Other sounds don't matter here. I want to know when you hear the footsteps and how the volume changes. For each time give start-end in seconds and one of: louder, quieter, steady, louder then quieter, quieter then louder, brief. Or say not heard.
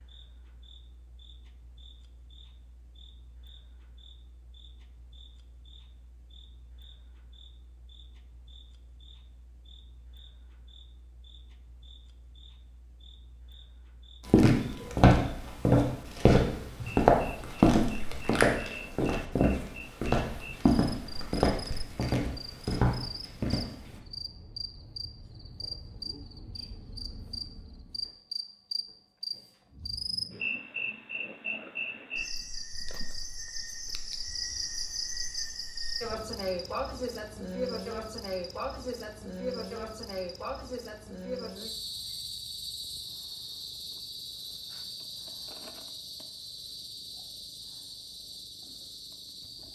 14.2-24.0 quieter.